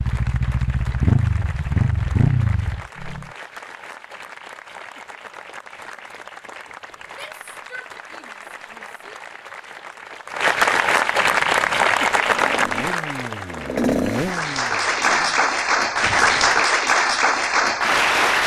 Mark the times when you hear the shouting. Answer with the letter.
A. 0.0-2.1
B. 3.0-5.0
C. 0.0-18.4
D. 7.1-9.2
D.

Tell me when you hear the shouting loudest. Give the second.
8 s.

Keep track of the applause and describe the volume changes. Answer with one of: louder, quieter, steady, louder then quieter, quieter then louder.
louder.